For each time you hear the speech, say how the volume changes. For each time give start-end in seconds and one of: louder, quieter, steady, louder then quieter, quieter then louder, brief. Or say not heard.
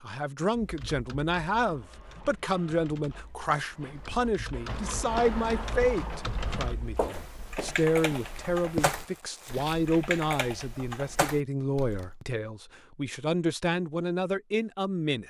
0.0-15.2 steady.